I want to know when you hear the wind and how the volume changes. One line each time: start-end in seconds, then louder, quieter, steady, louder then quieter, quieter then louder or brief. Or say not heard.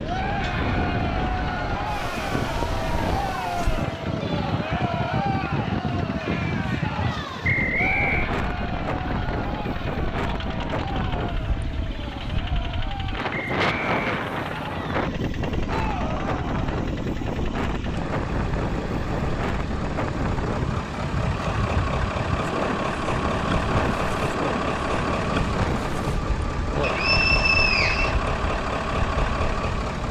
0.0-30.0 steady.